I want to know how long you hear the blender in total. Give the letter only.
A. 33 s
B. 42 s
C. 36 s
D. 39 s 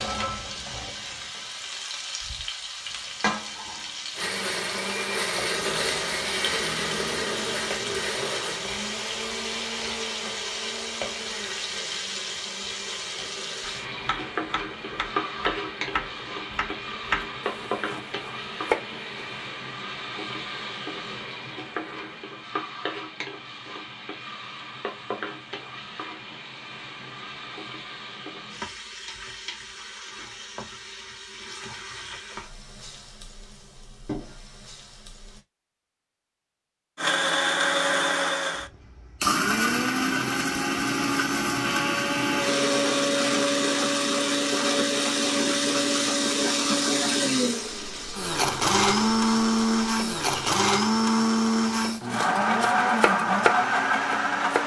C.